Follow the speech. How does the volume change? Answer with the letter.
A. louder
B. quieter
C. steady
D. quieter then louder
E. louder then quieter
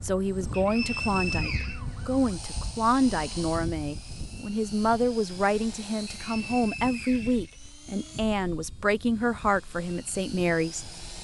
C.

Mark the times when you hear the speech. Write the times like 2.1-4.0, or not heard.
0.0-11.2.